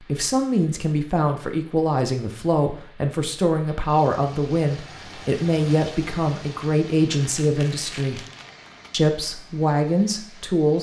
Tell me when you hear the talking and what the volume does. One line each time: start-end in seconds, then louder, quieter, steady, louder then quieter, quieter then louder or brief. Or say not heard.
0.0-8.2 steady
8.9-10.7 brief.